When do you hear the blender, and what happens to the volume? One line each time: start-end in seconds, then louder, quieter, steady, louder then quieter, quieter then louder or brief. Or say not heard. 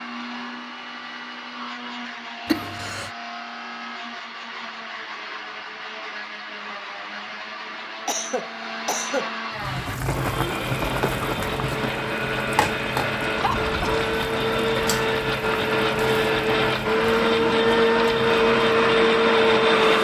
0.0-19.9 louder.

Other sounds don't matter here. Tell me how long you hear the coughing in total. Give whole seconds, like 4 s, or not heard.
3 s.